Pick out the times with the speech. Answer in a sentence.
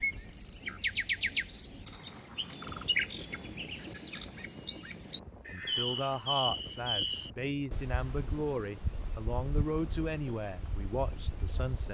The speech can be heard from 5.5 to 11.8 s.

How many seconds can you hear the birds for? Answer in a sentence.
The birds can be heard for 12 seconds in total.